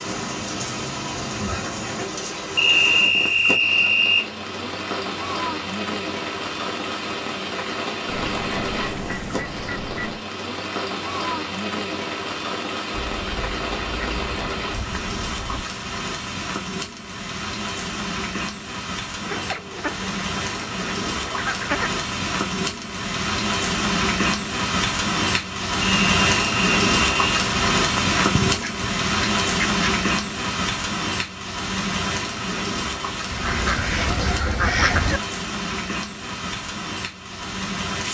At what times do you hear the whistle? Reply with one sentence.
You can hear the whistle from 2.5 to 4.2 s and from 25.8 to 27.4 s.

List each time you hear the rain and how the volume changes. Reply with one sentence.
You can hear the rain from 0.0 to 38.0 s, getting louder then quieter.